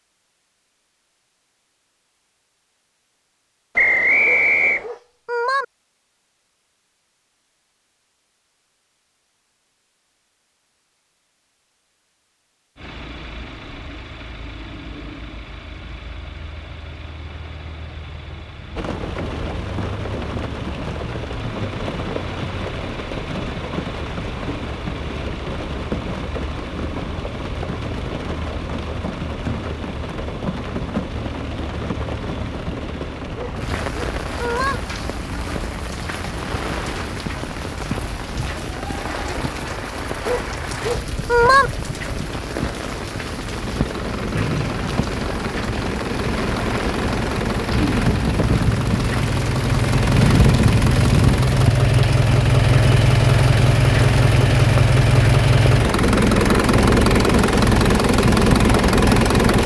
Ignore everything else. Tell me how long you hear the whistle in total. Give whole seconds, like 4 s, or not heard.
2 s.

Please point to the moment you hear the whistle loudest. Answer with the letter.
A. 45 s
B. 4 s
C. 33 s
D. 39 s
B.